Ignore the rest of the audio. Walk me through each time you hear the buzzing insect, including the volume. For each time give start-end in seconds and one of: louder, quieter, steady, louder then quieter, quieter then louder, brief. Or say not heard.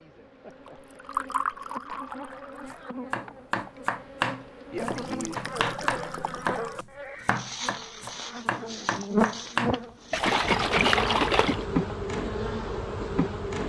0.0-13.6 louder.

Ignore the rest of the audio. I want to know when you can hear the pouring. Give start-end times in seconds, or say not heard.
0.7-3.0, 4.8-6.8, 10.1-11.7.